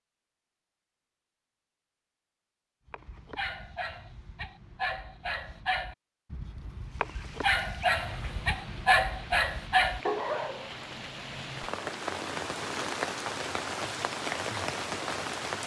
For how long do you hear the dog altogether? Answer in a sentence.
The dog can be heard for 8 seconds in total.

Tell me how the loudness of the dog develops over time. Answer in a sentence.
The volume of the dog goes up.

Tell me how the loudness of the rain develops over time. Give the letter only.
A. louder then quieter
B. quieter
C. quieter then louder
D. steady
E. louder
E.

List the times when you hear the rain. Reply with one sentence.
You can hear the rain from 6.8 to 15.6 s.